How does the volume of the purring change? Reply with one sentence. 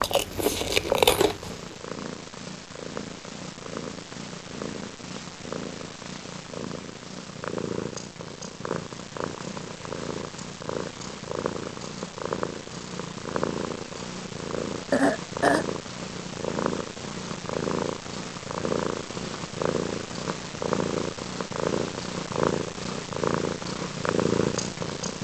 The loudness of the purring goes up.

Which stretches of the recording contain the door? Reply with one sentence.
The door can't be heard in this clip.